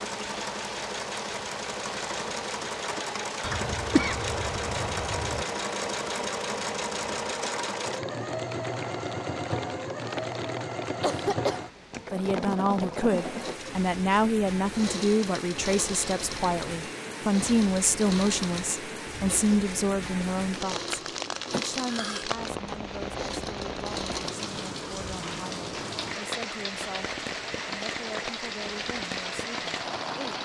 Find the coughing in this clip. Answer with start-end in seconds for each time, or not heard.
3.4-5.5, 11.0-11.6, 21.5-22.2.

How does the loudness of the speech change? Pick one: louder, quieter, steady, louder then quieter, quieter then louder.
quieter.